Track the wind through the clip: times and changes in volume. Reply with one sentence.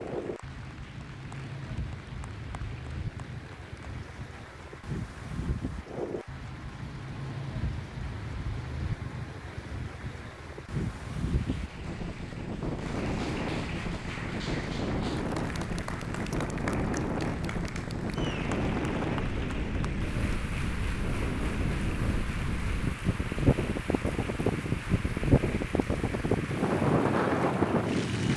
You can hear the wind from 0.0 to 28.3 s, getting louder.